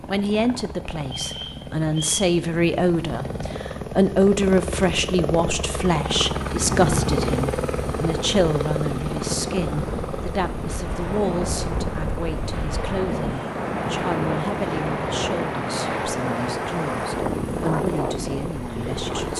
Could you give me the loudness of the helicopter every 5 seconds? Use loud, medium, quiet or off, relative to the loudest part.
medium, loud, medium, medium.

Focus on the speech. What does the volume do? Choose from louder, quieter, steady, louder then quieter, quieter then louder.
quieter.